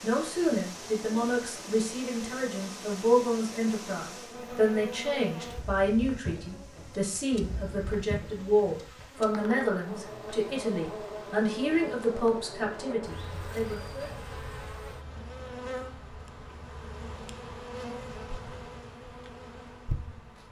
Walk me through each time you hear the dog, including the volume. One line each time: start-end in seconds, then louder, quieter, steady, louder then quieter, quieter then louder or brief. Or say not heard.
not heard.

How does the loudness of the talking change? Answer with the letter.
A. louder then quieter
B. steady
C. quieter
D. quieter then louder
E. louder
B.